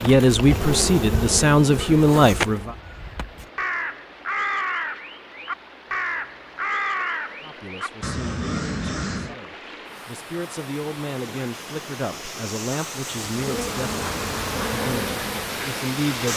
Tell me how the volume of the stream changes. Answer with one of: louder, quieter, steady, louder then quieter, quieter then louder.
louder.